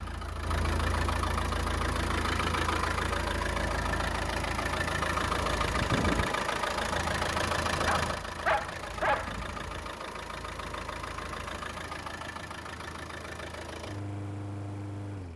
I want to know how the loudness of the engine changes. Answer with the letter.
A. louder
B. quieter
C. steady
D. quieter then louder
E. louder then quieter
B.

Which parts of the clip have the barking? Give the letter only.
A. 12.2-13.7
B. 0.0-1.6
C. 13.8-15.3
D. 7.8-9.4
D.